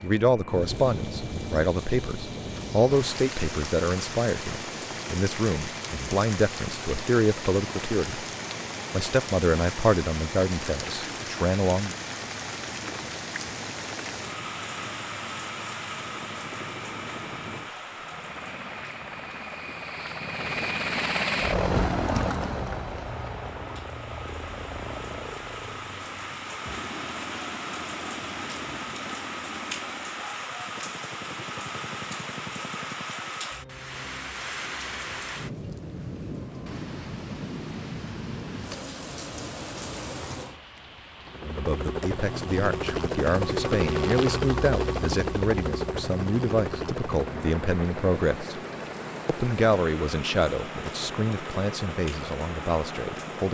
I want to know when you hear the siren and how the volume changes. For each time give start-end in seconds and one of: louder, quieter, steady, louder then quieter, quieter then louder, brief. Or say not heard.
not heard.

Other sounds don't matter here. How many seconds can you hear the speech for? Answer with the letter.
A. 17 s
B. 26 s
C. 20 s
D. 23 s
D.